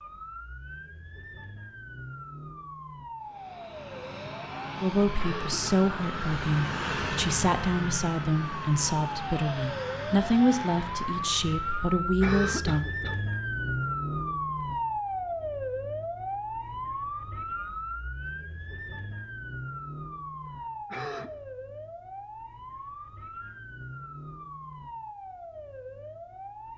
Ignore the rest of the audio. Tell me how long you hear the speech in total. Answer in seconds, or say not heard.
8 s.